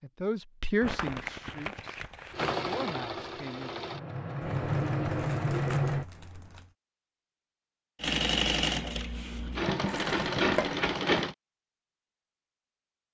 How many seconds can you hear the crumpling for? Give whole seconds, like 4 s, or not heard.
5 s.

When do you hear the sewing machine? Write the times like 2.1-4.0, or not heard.
2.3-6.0, 8.0-11.3.